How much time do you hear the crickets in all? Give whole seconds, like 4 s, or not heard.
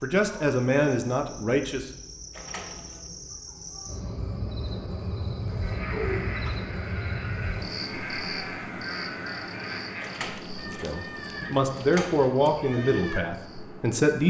14 s.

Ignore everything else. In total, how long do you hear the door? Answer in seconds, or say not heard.
4 s.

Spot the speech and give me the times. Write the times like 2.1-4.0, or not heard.
0.0-1.9, 10.7-14.2.